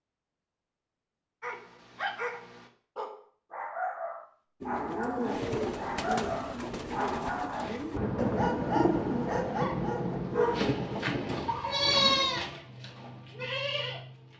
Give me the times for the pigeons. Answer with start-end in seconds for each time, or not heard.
4.6-9.7.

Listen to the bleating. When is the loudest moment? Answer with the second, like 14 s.
12 s.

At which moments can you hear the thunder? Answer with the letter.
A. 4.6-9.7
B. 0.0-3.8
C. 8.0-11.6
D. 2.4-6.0
C.